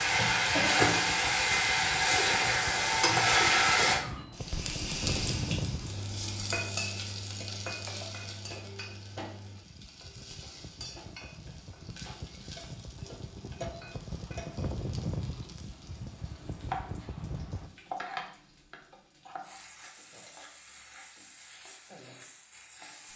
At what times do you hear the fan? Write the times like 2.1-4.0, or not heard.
0.0-17.7.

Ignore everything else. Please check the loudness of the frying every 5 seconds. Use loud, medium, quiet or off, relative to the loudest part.
loud, quiet, quiet, quiet, quiet.